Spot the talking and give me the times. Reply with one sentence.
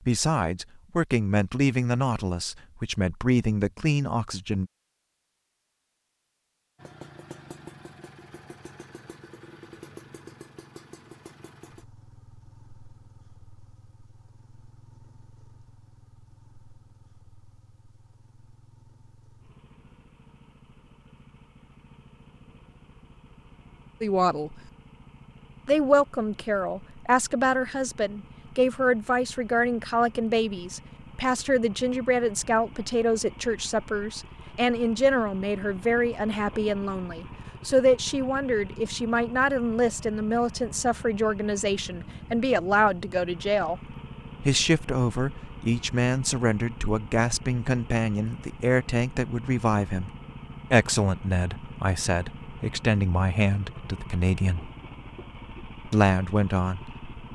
The talking can be heard from 0.1 to 4.7 s, from 24.0 to 24.6 s, from 25.6 to 43.8 s, from 44.4 to 50.1 s, from 50.7 to 54.7 s and from 55.9 to 57.3 s.